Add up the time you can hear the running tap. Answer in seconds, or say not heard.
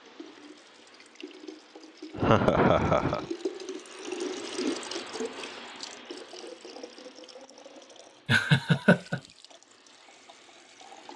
11 s.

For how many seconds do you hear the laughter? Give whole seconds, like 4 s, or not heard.
2 s.